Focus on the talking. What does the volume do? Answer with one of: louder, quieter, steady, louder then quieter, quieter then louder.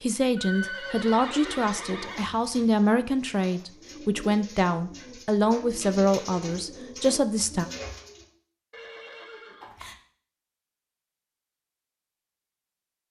steady.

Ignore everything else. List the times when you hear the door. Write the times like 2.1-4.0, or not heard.
not heard.